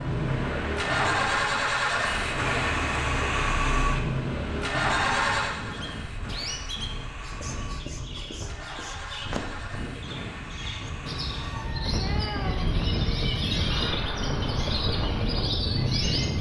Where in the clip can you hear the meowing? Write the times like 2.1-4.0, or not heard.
4.8-5.5, 11.3-12.8.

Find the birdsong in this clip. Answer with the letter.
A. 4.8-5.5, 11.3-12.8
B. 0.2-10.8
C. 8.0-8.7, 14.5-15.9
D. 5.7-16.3
D.